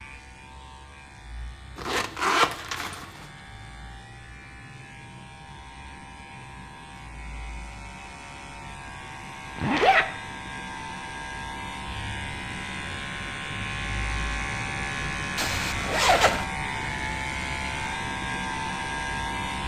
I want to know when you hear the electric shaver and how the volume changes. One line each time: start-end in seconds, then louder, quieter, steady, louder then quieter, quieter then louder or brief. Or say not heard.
0.0-19.6 louder.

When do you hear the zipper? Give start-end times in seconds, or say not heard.
1.8-3.0, 9.6-10.1, 15.3-16.4.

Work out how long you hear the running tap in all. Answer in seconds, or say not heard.
not heard.